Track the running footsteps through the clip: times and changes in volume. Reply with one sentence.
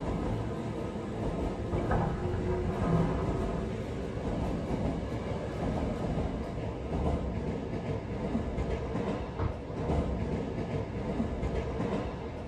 The running footsteps can't be heard in this clip.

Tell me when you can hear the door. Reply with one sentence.
The door can be heard from 1.7 to 3.7 s and from 9.2 to 9.6 s.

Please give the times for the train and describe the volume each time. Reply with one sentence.
You can hear the train from 0.0 to 12.4 s, at a steady volume.